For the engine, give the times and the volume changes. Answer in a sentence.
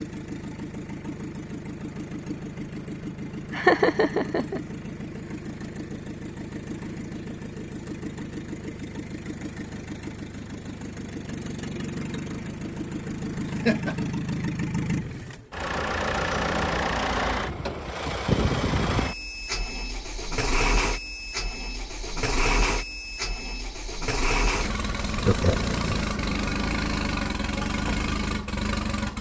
The engine can be heard from 0.0 to 29.1 s, getting louder.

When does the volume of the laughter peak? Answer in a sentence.
The volume of the laughter peaks at 4 seconds.